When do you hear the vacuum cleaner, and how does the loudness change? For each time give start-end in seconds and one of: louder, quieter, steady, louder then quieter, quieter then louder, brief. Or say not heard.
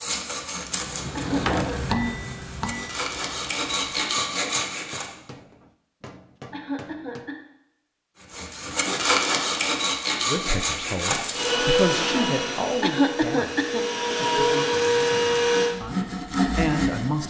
11.3-15.8 quieter then louder.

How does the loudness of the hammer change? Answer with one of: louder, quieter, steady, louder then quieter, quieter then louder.
quieter.